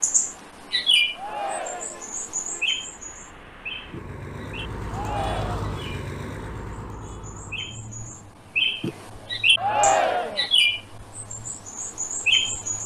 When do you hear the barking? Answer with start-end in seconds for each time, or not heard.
not heard.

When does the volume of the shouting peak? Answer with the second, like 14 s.
10 s.